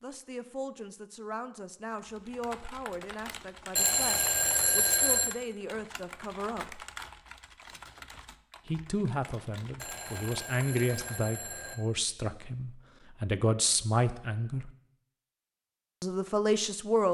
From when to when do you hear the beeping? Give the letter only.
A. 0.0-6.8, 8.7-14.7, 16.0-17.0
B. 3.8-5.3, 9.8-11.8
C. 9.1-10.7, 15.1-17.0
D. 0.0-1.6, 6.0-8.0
B.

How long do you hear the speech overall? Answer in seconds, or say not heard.
14 s.